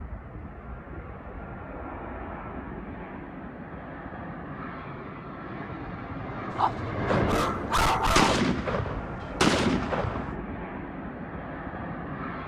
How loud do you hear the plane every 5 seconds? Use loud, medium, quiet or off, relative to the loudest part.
medium, loud, loud.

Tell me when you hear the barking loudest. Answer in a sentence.
The loudest moment of the barking is at 8 seconds.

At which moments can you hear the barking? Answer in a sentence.
The barking can be heard from 6.5 to 8.4 s.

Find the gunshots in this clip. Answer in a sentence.
You can hear the gunshots from 7.0 to 10.3 s.